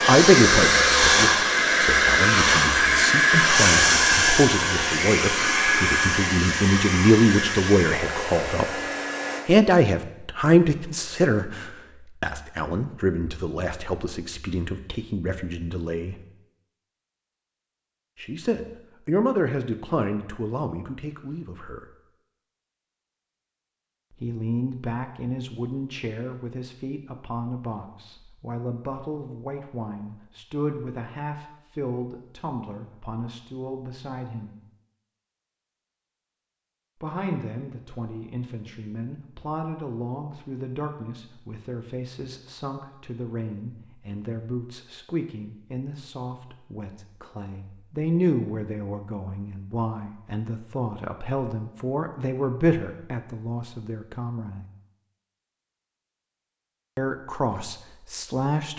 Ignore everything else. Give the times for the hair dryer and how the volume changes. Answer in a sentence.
The hair dryer can be heard from 0.0 to 9.4 s, getting quieter.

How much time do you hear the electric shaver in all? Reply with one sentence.
You can't hear the electric shaver here.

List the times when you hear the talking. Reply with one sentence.
The talking can be heard from 0.1 to 8.8 s, from 9.4 to 16.1 s, from 18.2 to 21.9 s, from 24.1 to 34.5 s, from 37.0 to 54.6 s and from 57.0 to 58.7 s.